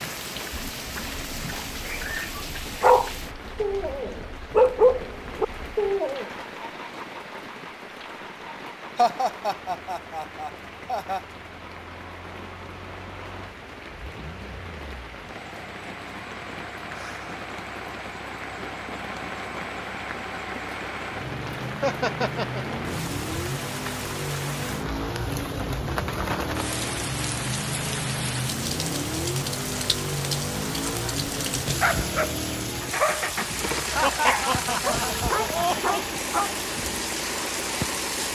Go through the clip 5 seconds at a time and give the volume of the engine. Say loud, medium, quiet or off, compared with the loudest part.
quiet, quiet, quiet, medium, loud, loud, loud, loud.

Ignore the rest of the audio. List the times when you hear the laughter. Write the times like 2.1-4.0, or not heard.
8.9-11.2, 21.8-22.6, 34.0-36.0.